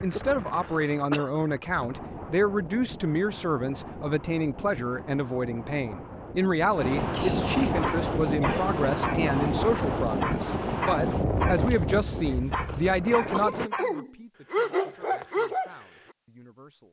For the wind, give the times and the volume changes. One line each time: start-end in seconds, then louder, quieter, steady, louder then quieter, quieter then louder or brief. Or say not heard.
0.0-13.7 louder.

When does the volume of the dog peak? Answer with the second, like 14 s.
15 s.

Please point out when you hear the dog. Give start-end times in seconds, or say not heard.
7.8-9.3, 10.2-11.7, 12.5-15.7.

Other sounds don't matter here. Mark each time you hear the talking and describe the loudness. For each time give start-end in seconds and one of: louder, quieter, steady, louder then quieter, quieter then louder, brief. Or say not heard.
0.0-16.8 quieter.